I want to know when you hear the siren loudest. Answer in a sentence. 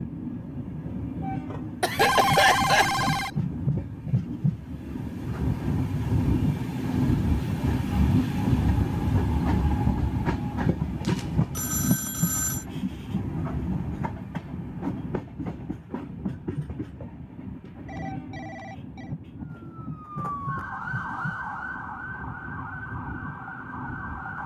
The loudest moment of the siren is at 21 seconds.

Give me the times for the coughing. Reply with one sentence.
You can hear the coughing from 1.8 to 3.0 s.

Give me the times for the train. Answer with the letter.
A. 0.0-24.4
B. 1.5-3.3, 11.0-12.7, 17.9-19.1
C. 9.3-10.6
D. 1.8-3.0
A.